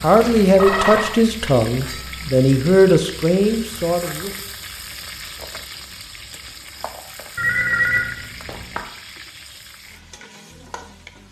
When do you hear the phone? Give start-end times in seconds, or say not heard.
0.2-1.1, 7.3-8.8.